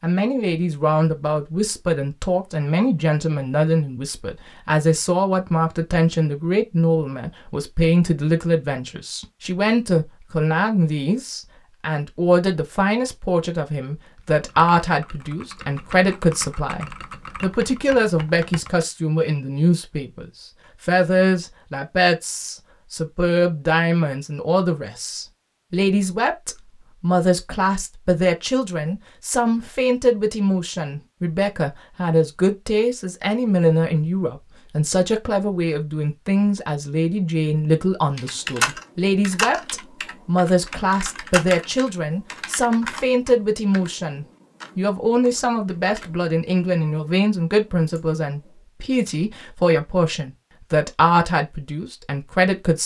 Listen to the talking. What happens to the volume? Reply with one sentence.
The volume of the talking stays about the same.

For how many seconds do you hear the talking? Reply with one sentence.
The talking can be heard for 53 seconds in total.